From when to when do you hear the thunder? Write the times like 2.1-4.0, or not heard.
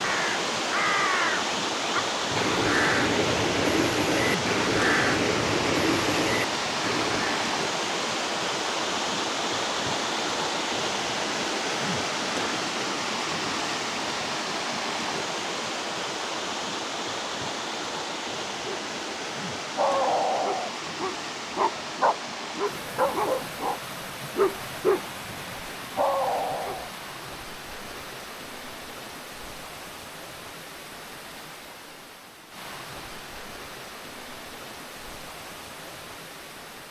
not heard.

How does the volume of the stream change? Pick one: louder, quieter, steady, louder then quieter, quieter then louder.
quieter.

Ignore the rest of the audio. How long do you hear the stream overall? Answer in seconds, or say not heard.
37 s.